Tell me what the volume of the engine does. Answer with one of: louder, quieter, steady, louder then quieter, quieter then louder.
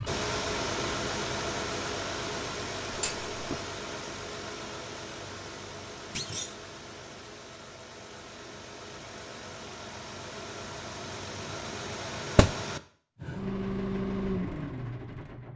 quieter then louder.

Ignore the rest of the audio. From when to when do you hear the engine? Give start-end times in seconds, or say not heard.
0.0-15.5.